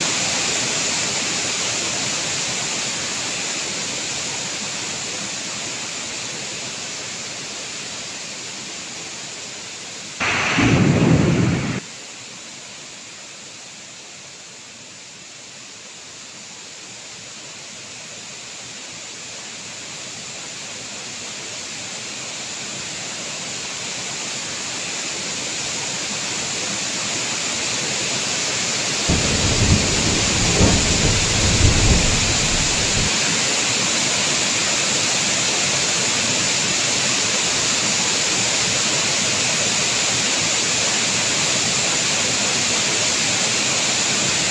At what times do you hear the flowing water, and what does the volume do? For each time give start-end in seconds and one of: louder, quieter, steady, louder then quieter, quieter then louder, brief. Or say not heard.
0.0-44.4 quieter then louder.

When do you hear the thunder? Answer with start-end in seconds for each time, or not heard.
10.2-11.8, 29.1-33.1.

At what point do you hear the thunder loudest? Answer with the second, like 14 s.
11 s.